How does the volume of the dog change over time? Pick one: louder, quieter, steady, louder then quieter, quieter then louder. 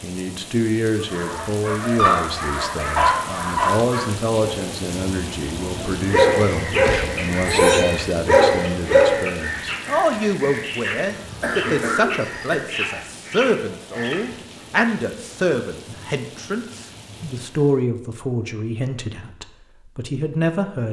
quieter then louder.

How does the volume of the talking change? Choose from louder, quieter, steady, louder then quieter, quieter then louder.
steady.